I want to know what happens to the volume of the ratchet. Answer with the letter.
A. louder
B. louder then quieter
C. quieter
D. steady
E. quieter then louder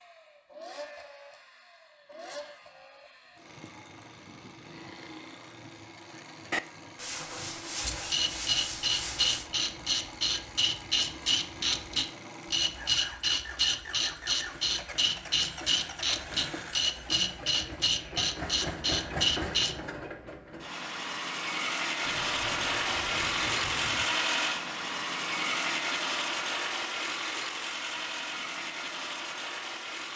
D.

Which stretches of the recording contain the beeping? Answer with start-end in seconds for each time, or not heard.
not heard.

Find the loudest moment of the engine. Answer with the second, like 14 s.
24 s.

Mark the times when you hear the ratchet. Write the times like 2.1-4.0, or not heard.
7.8-19.8.